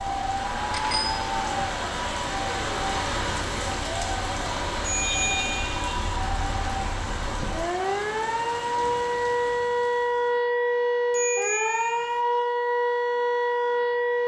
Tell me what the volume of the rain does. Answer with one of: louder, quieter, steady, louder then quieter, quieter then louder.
quieter.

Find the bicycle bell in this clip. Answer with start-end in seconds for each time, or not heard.
0.7-1.2, 4.8-5.8, 11.1-12.2.